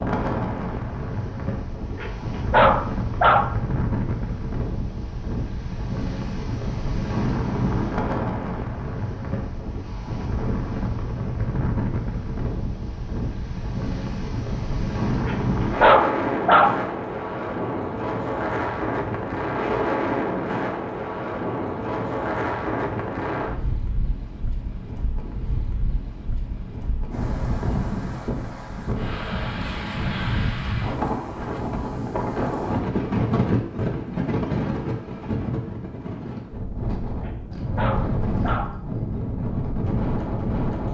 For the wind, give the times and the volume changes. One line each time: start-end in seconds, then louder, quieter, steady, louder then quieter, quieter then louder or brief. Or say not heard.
0.0-40.9 steady.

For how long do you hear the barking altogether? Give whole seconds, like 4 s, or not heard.
5 s.